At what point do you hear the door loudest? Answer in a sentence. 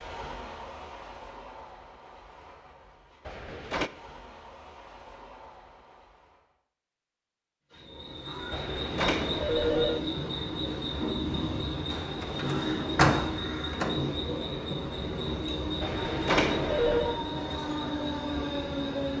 The loudest moment of the door is at 13 seconds.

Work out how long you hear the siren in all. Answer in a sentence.
You can't hear the siren here.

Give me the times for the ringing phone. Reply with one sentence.
The ringing phone can be heard from 3.2 to 3.9 s, from 8.5 to 10.0 s and from 15.8 to 17.2 s.